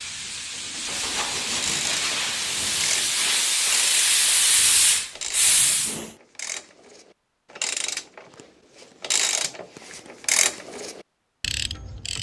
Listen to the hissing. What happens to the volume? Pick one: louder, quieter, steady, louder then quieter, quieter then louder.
louder.